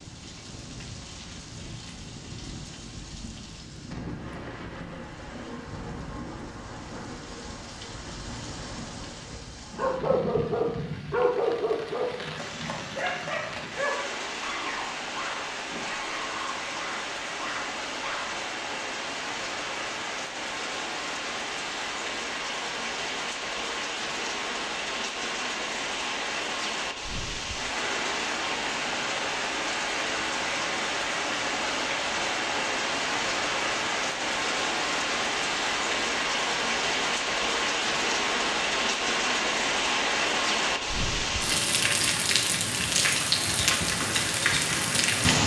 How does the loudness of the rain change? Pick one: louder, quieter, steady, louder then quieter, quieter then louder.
louder.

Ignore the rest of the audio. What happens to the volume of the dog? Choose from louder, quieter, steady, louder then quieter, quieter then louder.
quieter.